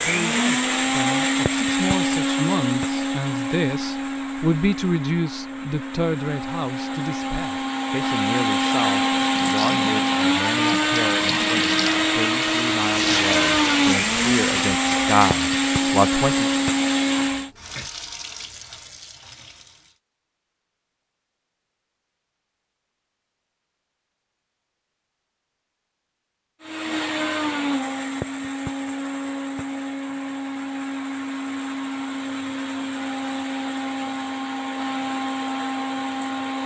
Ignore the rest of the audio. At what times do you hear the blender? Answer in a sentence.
You can hear the blender from 0.0 to 17.5 s and from 26.6 to 36.6 s.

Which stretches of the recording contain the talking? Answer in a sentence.
You can hear the talking from 0.0 to 16.6 s.